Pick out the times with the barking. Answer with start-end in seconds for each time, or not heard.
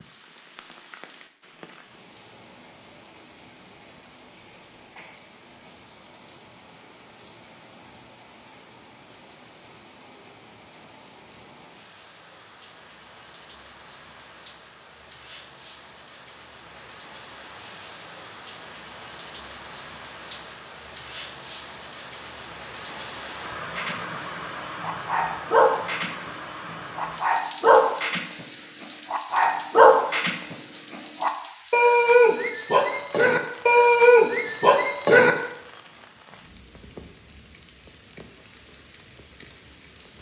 23.8-35.3.